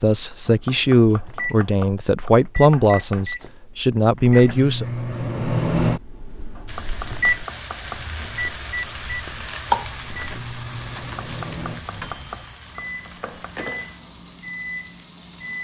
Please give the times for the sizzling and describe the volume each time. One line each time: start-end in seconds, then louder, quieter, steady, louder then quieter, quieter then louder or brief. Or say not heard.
6.7-15.5 louder then quieter.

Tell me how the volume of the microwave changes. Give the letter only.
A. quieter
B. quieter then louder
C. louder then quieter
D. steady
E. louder
C.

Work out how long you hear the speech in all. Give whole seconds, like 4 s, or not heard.
5 s.